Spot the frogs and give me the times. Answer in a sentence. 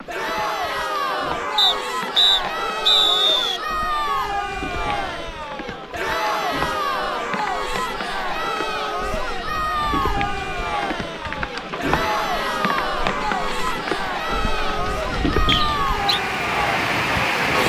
You can't hear the frogs here.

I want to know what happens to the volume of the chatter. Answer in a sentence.
The loudness of the chatter stays about the same.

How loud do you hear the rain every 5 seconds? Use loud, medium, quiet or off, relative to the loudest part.
quiet, medium, medium, loud.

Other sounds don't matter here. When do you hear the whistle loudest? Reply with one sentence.
The loudest moment of the whistle is at 3 seconds.